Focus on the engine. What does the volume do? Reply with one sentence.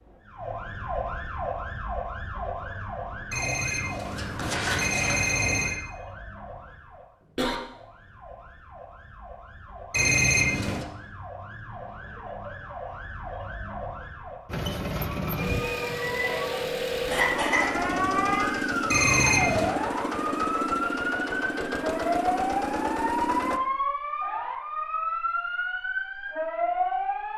The volume of the engine stays about the same.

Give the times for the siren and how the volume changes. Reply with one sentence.
You can hear the siren from 0.1 to 27.3 s, getting quieter then louder.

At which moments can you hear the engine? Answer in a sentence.
The engine can be heard from 14.4 to 23.6 s.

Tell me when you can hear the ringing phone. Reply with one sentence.
The ringing phone can be heard from 3.3 to 5.8 s, from 9.9 to 10.8 s and from 18.9 to 19.8 s.